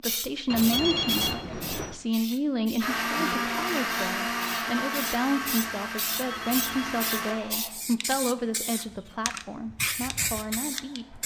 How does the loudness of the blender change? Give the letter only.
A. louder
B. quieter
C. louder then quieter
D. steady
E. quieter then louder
B.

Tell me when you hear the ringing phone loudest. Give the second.
1 s.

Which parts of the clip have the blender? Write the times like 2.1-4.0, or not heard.
2.8-7.3.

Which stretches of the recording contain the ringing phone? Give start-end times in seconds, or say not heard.
0.5-1.9, 6.0-7.5.